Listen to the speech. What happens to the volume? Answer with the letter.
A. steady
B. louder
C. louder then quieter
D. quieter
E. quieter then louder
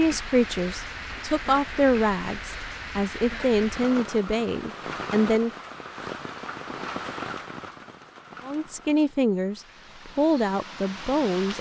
A.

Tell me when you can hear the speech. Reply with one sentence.
The speech can be heard from 0.0 to 5.5 s and from 8.4 to 11.5 s.